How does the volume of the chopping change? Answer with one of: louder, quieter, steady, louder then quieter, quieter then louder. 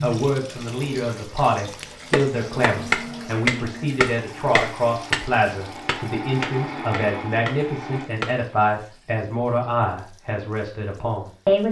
quieter.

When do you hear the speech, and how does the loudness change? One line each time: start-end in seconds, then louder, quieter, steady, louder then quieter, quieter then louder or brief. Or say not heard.
0.0-11.6 steady.